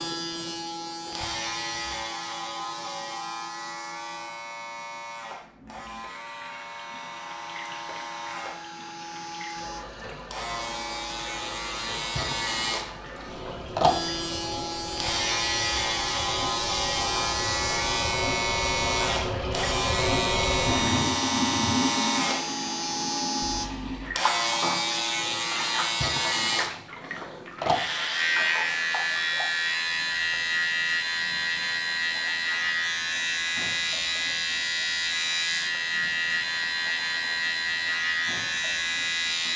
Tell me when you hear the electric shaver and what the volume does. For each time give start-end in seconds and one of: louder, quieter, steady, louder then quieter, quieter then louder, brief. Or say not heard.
0.0-39.5 louder.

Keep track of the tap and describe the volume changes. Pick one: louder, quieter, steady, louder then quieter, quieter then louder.
louder then quieter.